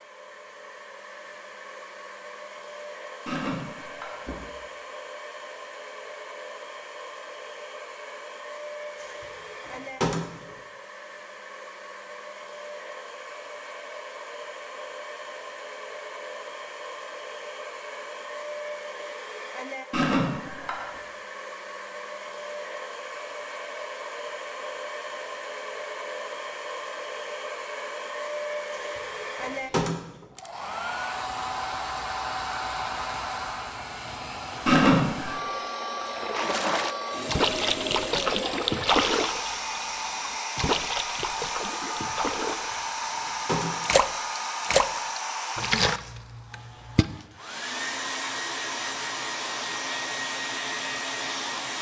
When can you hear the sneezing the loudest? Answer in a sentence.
The loudest moment of the sneezing is at 35 seconds.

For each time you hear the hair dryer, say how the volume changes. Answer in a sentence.
You can hear the hair dryer from 0.0 to 51.7 s, getting louder.